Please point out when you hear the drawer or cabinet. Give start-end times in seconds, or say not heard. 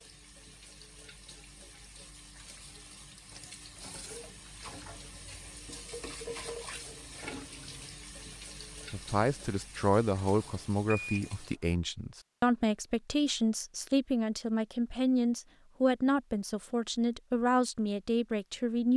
not heard.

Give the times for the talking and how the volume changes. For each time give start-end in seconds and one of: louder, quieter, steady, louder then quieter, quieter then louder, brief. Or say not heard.
8.9-18.9 steady.